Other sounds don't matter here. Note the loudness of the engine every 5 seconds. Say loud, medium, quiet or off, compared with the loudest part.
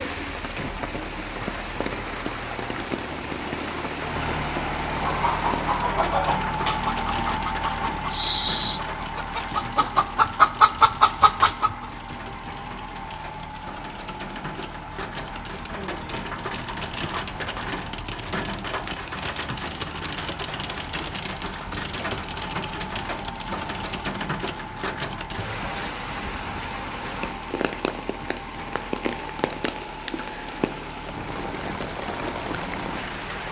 medium, loud, medium, medium, medium, medium, medium.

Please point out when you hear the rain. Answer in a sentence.
The rain can be heard from 0.0 to 33.4 s.